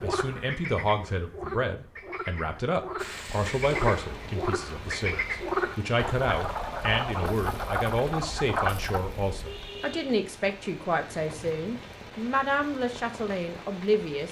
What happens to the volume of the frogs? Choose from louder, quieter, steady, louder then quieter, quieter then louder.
louder.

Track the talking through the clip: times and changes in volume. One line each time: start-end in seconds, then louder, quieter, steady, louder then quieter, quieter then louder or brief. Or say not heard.
0.0-14.2 steady.